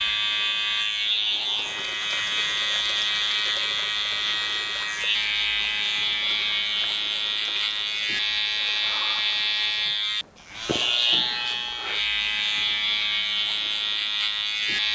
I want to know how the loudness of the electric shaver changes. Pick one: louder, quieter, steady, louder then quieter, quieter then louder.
steady.